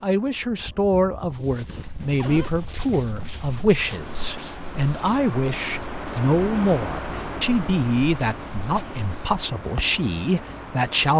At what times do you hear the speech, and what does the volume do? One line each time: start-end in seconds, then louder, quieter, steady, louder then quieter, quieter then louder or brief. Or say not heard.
0.0-11.1 steady.